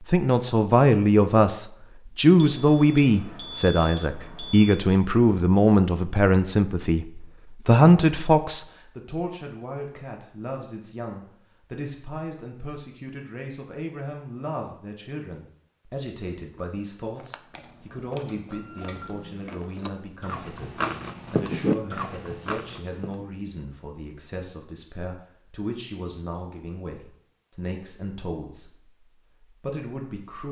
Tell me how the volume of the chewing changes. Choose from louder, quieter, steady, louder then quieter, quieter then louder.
louder.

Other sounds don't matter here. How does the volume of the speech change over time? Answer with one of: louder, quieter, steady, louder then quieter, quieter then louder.
quieter.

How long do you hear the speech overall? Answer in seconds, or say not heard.
30 s.